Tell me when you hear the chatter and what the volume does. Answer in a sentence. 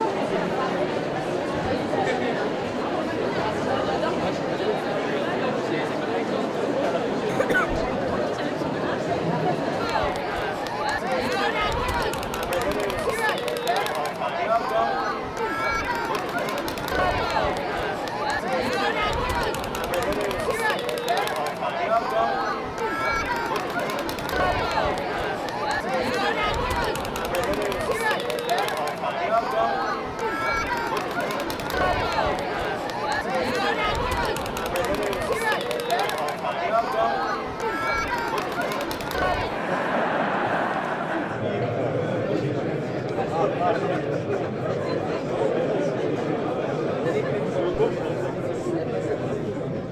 You can hear the chatter from 0.0 to 49.8 s, at a steady volume.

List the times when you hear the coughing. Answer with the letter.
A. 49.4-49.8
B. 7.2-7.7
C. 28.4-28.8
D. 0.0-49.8
B.